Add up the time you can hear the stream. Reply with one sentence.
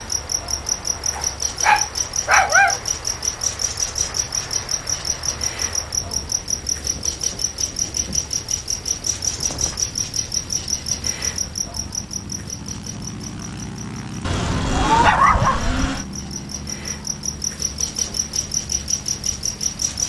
The stream can't be heard in this clip.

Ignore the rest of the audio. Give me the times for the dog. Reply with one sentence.
The dog can be heard from 1.1 to 2.8 s and from 14.2 to 16.1 s.